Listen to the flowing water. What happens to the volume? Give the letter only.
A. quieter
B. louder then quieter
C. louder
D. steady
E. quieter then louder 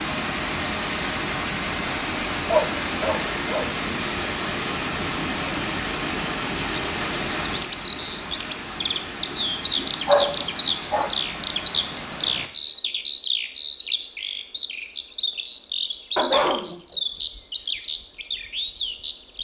A.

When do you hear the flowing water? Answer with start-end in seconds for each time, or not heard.
0.0-12.5.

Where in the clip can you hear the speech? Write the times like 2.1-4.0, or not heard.
not heard.